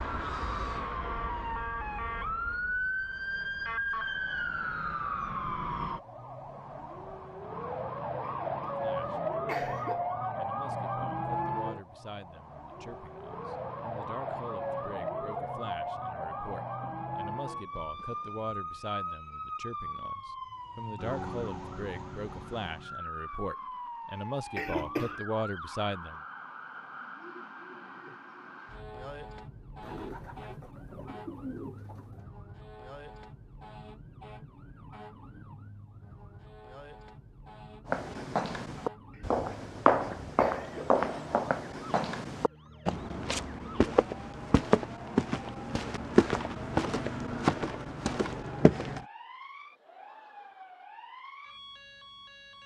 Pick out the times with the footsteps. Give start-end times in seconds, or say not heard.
37.9-49.0.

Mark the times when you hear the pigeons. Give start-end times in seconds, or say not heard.
29.8-32.2.